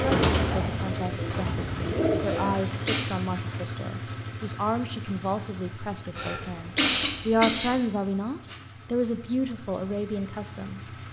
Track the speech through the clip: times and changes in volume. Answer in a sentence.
The speech can be heard from 0.0 to 10.8 s, getting louder.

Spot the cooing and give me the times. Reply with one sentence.
The cooing can be heard from 0.0 to 2.5 s.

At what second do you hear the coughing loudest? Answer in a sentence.
The volume of the coughing peaks at 7 seconds.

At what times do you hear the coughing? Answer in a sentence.
You can hear the coughing from 2.2 to 3.0 s and from 6.2 to 7.8 s.